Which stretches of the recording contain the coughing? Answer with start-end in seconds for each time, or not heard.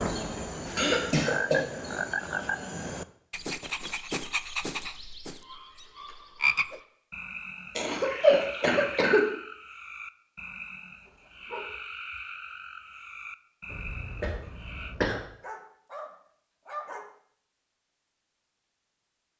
0.8-1.6, 7.8-9.2, 13.7-15.2.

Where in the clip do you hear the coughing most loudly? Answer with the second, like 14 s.
8 s.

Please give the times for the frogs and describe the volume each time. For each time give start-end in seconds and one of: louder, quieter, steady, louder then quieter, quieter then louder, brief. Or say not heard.
0.0-14.9 quieter.